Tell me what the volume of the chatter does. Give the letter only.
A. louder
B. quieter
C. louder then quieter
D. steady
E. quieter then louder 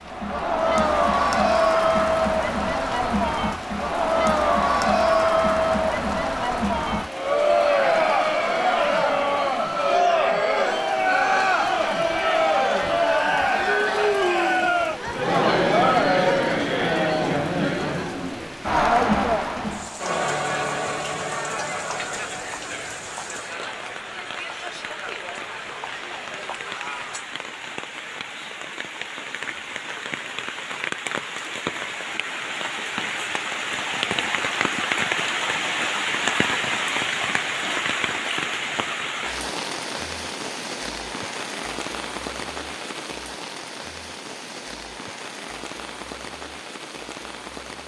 B.